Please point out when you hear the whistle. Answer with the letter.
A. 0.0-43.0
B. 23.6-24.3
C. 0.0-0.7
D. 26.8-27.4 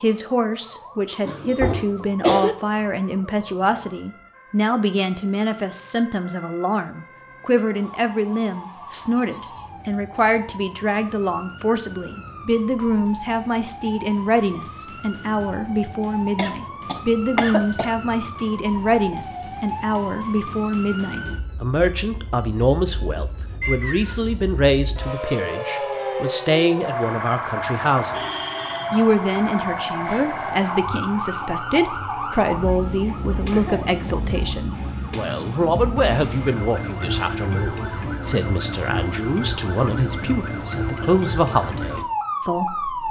B.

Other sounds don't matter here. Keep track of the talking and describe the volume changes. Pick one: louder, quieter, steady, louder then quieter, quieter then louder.
steady.